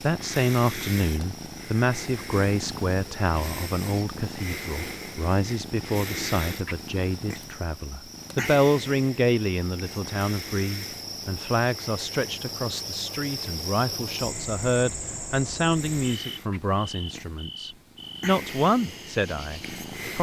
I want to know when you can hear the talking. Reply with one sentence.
You can hear the talking from 0.0 to 20.1 s.